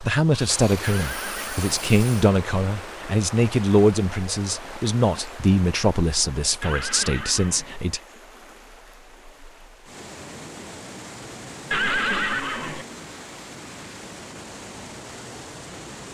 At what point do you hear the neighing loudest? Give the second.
12 s.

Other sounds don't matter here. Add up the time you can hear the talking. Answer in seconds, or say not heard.
8 s.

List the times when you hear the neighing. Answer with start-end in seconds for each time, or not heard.
0.8-1.8, 6.6-7.8, 11.7-12.8.